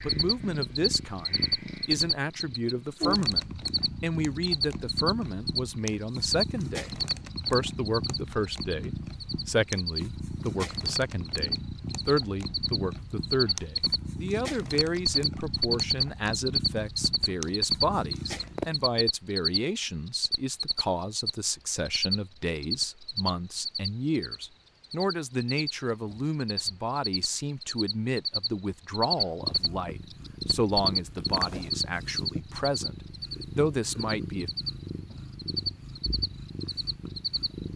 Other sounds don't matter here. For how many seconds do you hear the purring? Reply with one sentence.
You can hear the purring for 27 seconds altogether.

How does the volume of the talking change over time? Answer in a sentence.
The loudness of the talking stays about the same.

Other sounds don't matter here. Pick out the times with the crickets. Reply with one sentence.
You can hear the crickets from 0.0 to 37.7 s.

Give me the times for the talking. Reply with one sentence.
You can hear the talking from 0.0 to 34.5 s.